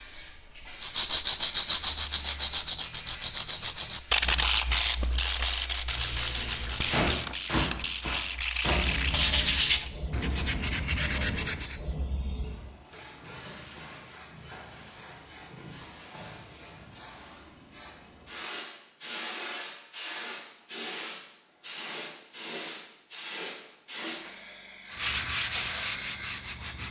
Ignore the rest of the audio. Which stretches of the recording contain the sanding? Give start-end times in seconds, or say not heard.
0.8-11.8, 24.9-26.8.